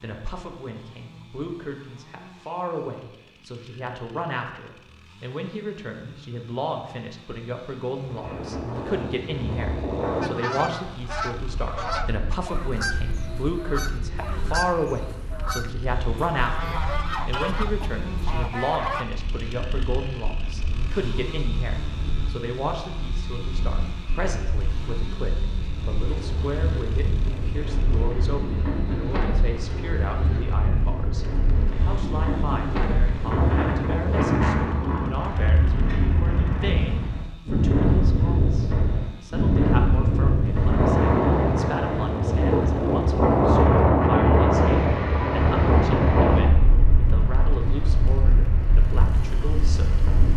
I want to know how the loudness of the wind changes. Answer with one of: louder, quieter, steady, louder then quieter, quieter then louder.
quieter then louder.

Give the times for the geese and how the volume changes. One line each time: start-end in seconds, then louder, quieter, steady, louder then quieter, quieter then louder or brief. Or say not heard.
10.2-19.1 steady.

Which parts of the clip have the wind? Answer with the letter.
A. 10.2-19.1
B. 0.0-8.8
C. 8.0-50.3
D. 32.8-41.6
C.